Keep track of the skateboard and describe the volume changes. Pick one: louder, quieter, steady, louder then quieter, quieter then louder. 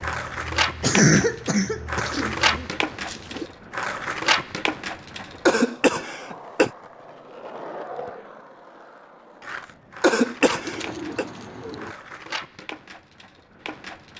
quieter.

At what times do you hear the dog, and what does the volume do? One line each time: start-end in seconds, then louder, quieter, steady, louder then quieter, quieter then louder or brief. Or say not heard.
not heard.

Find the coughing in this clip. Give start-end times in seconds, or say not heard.
0.0-2.5, 5.5-6.7, 10.0-11.2.